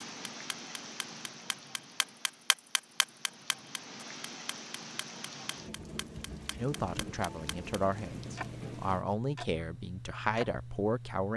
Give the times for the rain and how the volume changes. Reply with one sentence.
The rain can be heard from 0.0 to 9.1 s, getting quieter then louder.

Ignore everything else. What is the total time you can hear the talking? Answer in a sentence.
The talking can be heard for 5 seconds in total.